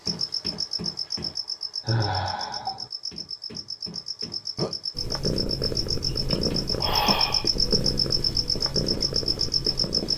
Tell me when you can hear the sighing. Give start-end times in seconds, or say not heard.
1.9-2.9, 6.1-7.5.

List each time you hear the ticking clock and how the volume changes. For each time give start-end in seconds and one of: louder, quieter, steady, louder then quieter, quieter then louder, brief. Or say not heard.
not heard.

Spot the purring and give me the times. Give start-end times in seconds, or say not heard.
5.0-10.1.